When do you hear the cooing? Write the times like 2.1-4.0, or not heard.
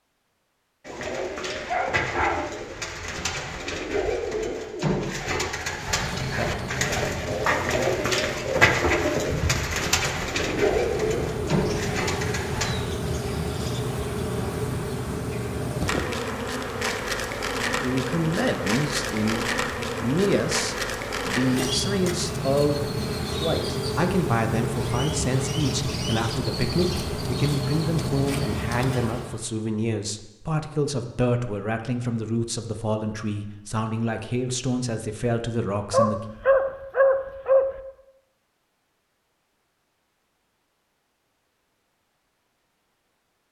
0.8-12.8.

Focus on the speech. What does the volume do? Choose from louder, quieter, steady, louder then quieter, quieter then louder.
steady.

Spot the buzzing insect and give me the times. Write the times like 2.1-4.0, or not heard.
5.6-29.4.